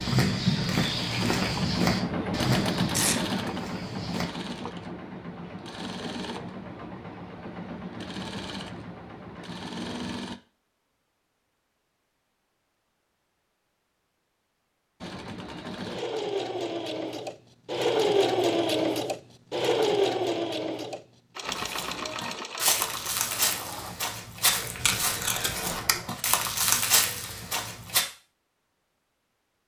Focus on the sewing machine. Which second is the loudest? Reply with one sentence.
The volume of the sewing machine peaks at 18 seconds.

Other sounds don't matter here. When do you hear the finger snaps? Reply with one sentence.
The finger snaps can't be heard in this clip.